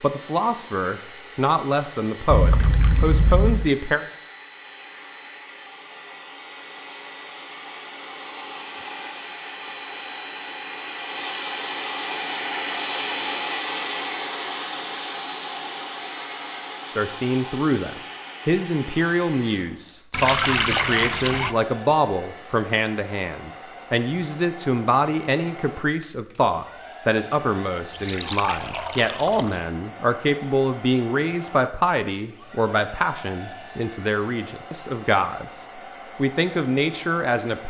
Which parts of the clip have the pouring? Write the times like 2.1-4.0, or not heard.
2.3-3.7, 20.1-21.6, 27.9-29.6.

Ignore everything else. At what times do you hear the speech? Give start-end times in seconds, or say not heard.
0.0-4.0, 16.9-37.6.